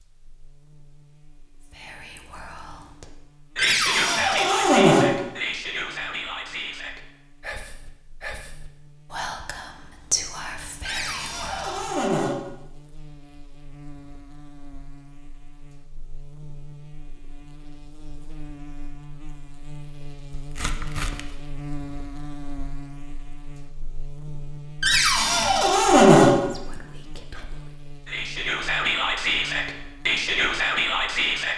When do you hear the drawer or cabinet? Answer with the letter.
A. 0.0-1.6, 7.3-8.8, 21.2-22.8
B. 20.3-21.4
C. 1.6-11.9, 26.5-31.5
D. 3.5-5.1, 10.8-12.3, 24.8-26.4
D.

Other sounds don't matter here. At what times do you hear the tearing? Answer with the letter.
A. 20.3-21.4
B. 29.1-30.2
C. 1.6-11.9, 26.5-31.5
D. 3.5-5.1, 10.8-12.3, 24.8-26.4
A.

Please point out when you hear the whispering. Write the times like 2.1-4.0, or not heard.
1.6-11.9, 26.5-31.5.